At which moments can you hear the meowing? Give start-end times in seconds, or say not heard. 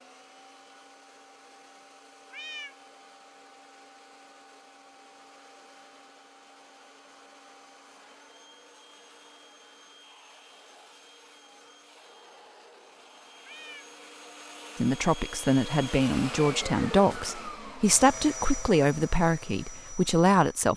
2.3-2.8, 13.4-13.9.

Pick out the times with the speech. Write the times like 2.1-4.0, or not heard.
14.8-20.7.